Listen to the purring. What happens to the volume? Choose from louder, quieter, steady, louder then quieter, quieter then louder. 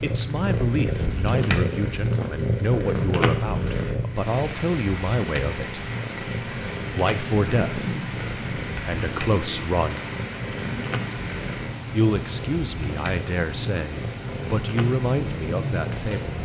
quieter.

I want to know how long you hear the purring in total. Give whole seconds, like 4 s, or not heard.
16 s.